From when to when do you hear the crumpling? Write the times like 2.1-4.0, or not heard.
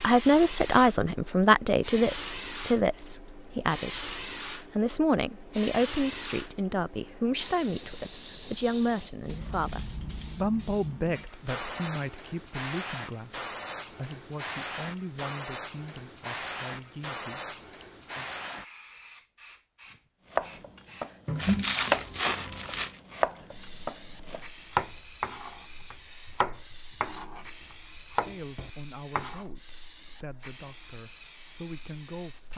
21.2-23.0.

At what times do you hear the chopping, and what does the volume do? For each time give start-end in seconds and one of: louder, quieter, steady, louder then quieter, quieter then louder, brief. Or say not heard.
20.3-27.4 quieter then louder
28.1-29.4 brief.